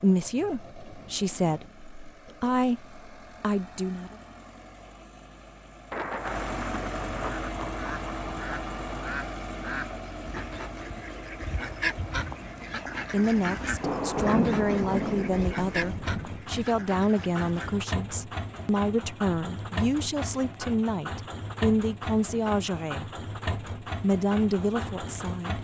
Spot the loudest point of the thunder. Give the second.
14 s.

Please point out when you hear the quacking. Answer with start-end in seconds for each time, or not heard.
7.5-17.8.